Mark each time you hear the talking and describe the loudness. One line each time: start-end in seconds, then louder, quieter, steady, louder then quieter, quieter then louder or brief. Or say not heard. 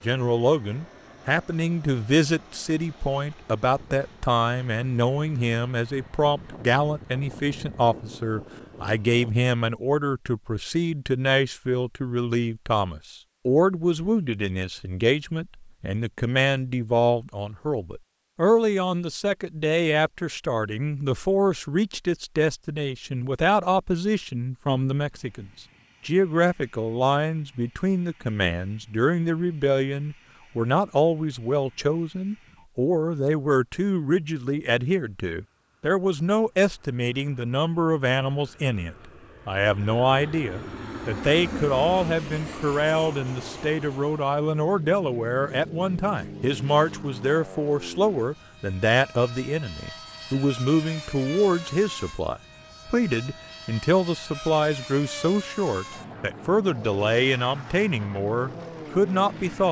0.0-59.6 steady.